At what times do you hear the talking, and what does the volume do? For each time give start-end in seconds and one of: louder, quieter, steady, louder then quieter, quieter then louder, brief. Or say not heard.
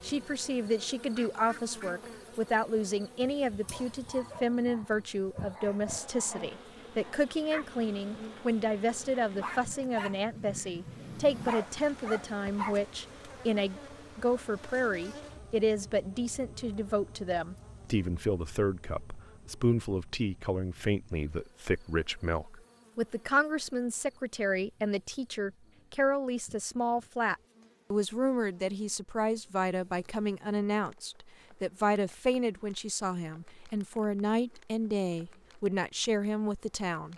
0.0-37.1 steady.